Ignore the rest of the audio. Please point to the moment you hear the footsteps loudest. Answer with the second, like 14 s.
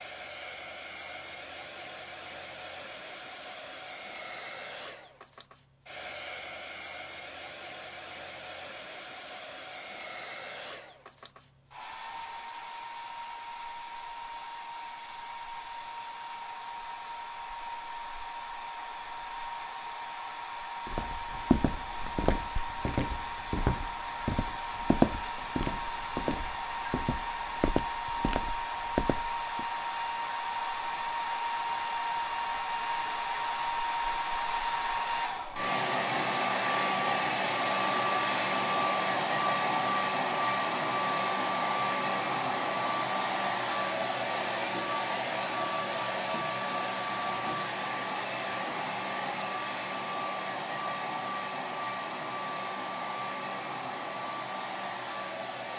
25 s.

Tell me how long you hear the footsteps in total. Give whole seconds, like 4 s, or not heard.
9 s.